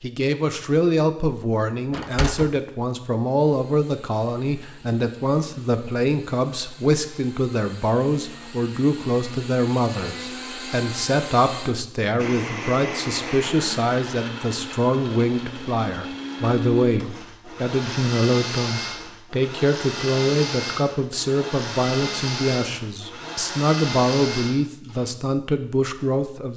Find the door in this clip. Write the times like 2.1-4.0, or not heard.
1.9-2.5.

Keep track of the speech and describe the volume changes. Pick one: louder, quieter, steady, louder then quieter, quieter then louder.
steady.